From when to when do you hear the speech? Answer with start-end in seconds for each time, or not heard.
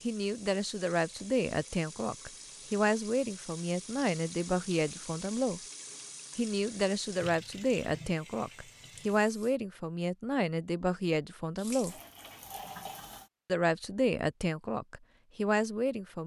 0.0-5.6, 6.3-11.9, 13.4-16.2.